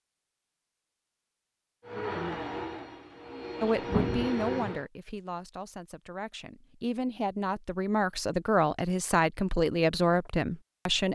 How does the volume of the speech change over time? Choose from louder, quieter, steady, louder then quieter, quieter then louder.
quieter then louder.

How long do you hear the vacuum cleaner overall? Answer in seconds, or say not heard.
3 s.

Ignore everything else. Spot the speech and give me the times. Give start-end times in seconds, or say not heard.
3.6-11.0.